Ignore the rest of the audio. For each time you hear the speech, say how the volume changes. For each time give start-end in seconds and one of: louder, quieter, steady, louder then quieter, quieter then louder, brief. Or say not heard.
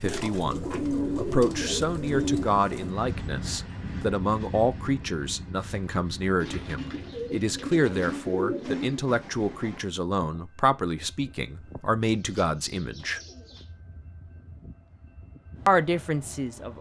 0.0-13.2 steady
15.7-16.7 brief.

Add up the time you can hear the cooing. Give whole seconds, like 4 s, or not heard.
7 s.